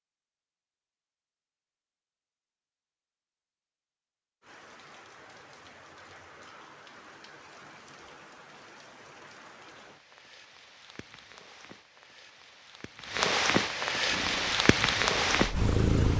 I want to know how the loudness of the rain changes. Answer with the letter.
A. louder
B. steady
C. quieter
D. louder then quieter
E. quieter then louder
A.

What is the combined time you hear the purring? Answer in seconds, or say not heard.
2 s.